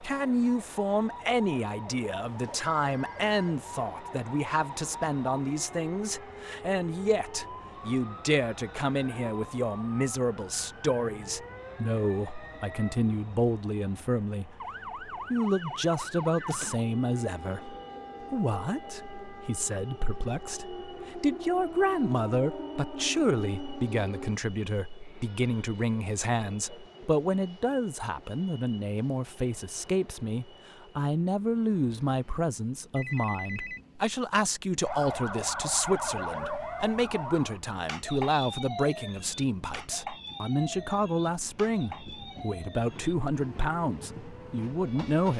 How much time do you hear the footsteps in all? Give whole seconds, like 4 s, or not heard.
not heard.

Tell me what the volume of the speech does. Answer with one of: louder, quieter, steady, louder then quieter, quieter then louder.
steady.